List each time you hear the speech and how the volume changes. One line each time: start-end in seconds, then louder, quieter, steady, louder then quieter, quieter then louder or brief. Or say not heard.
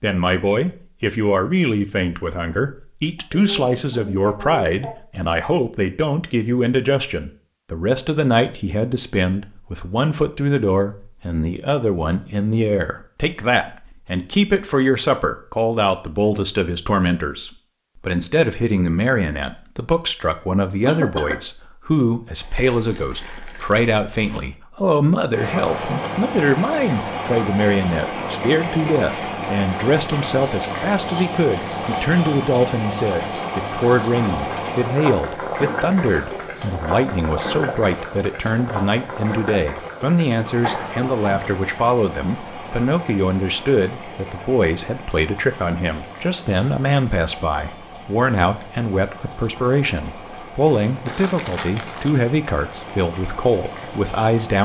0.0-54.6 steady.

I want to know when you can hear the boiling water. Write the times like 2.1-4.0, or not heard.
25.3-54.6.